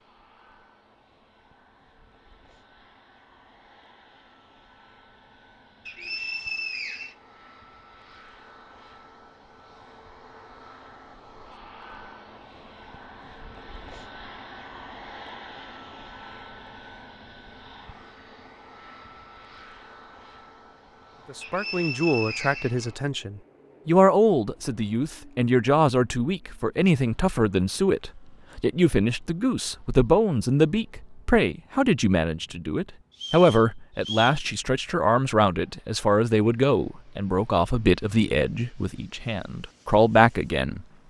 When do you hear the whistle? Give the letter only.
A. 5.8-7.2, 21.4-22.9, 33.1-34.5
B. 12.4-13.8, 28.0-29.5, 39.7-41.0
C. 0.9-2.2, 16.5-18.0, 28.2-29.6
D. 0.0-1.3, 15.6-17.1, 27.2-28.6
A.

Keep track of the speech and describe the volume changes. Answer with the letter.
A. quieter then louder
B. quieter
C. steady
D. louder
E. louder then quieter
C.